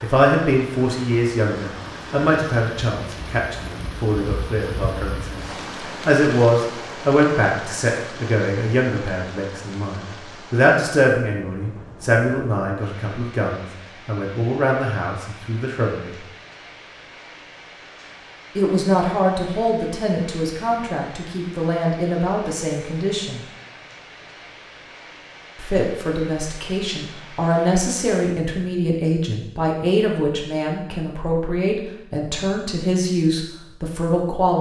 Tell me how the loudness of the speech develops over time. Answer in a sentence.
The loudness of the speech stays about the same.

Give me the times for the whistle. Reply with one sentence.
The whistle can't be heard in this clip.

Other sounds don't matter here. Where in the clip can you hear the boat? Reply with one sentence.
You can't hear the boat here.